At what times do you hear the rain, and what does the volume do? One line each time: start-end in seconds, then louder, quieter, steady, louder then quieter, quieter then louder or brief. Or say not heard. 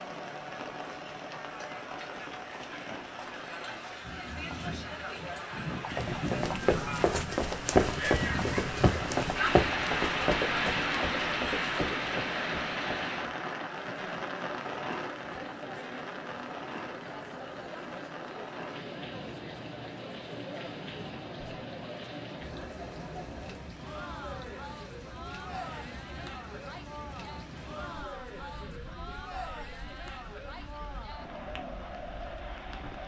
0.0-33.0 louder then quieter.